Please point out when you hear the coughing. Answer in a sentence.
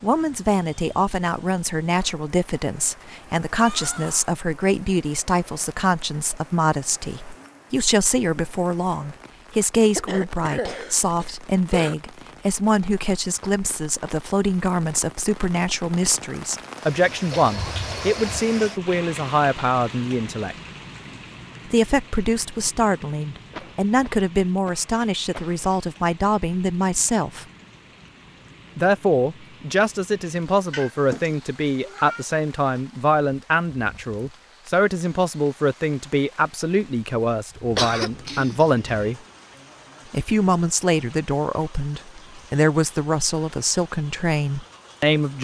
The coughing can be heard from 9.9 to 11.9 s, from 23.5 to 25.6 s and from 37.8 to 39.1 s.